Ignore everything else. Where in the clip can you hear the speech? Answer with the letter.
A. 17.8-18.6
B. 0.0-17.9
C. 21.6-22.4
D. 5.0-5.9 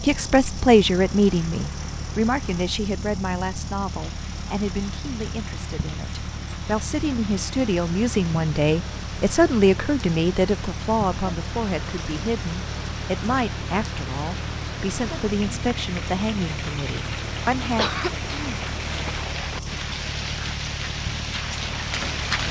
B.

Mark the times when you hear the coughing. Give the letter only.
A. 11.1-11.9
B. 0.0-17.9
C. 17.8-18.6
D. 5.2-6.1
C.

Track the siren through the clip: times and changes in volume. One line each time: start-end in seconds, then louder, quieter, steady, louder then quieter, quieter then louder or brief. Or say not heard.
not heard.